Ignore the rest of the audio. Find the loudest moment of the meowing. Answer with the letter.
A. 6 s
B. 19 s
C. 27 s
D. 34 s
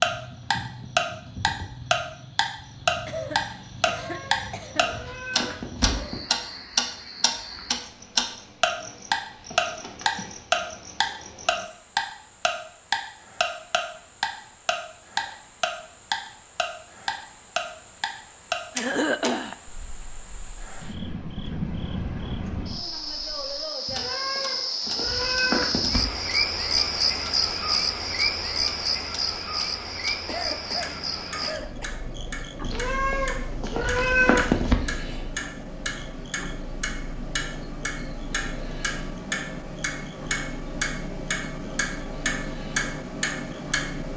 D.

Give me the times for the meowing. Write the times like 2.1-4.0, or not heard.
3.8-6.2, 23.9-26.1, 32.6-34.8.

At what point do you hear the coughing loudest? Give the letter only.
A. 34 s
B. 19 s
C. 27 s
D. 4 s
B.